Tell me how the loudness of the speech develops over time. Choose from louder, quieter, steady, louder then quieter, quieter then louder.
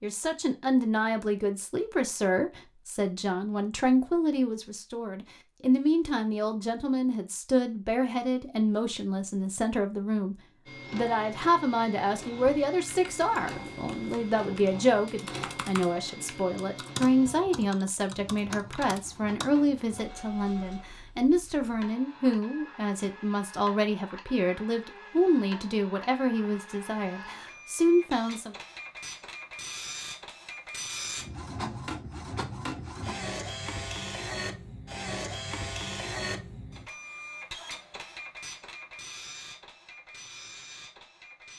steady.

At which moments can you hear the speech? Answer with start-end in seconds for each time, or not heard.
0.0-28.6.